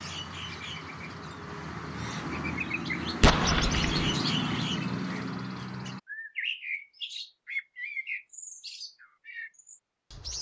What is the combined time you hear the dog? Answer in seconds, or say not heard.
not heard.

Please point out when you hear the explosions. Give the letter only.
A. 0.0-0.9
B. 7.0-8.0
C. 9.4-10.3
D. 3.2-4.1
D.